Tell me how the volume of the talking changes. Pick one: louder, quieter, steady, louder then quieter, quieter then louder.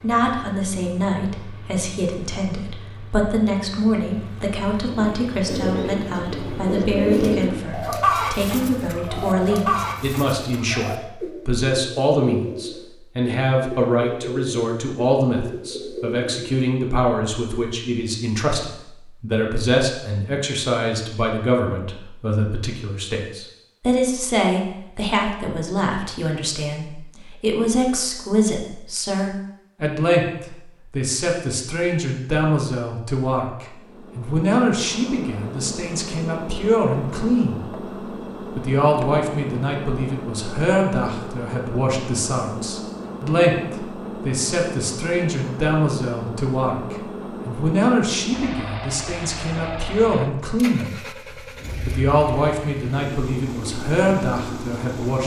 steady.